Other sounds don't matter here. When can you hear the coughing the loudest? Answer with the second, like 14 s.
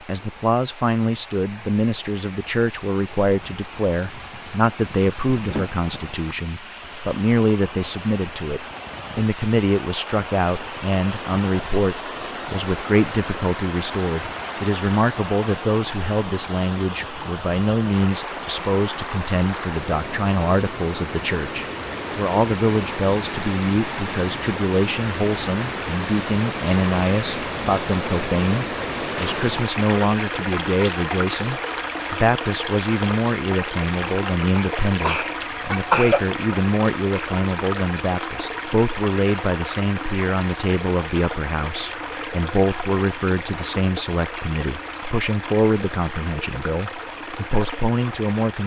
36 s.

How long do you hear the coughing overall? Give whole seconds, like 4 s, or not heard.
3 s.